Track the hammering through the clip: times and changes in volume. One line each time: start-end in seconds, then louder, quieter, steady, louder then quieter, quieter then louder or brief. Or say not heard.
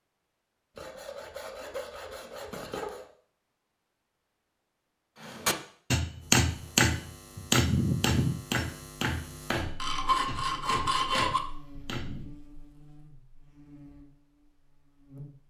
5.2-12.3 quieter.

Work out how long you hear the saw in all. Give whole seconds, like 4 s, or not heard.
4 s.